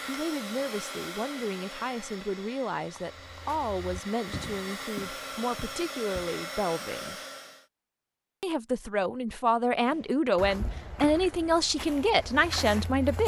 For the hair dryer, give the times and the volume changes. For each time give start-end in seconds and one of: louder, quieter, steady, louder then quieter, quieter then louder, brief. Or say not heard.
0.0-7.7 quieter then louder.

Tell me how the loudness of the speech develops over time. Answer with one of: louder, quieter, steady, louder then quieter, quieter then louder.
louder.